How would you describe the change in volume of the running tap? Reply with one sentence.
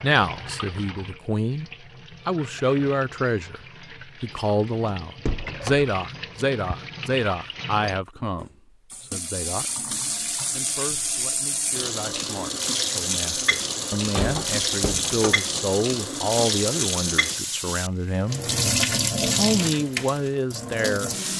The loudness of the running tap goes up.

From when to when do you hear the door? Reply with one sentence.
You can hear the door from 4.8 to 5.9 s and from 13.9 to 15.7 s.